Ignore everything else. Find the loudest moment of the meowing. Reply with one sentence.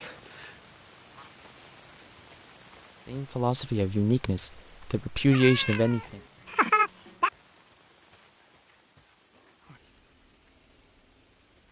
The loudest moment of the meowing is at 7 seconds.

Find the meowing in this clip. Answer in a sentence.
You can hear the meowing from 5.3 to 7.3 s.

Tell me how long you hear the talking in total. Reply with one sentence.
The talking can be heard for 3 seconds in total.